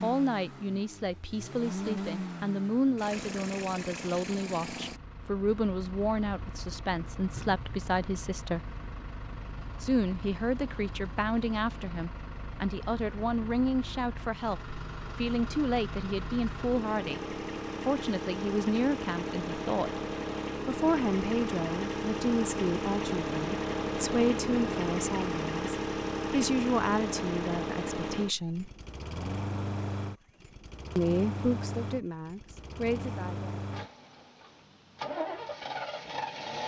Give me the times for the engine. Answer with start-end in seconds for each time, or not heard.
0.0-36.6.